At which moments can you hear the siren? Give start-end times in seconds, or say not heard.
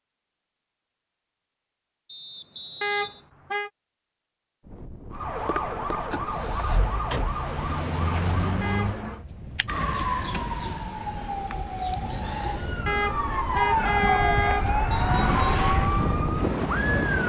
5.1-17.2.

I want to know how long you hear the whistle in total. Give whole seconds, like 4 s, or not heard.
2 s.